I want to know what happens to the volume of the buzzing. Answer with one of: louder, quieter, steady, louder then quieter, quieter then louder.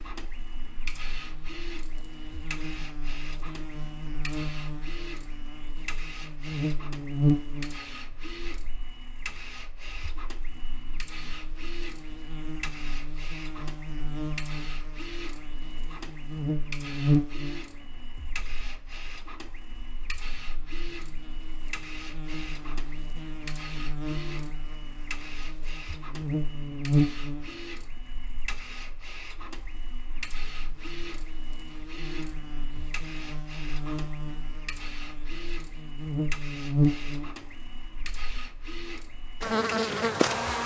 quieter then louder.